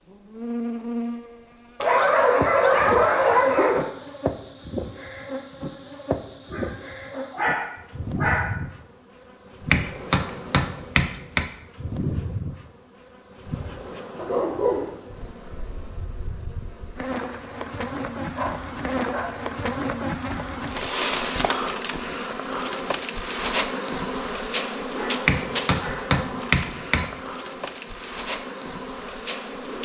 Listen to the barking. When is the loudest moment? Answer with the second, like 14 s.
3 s.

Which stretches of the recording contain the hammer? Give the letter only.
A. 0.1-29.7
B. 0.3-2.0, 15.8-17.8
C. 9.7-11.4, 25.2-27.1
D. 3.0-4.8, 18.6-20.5
C.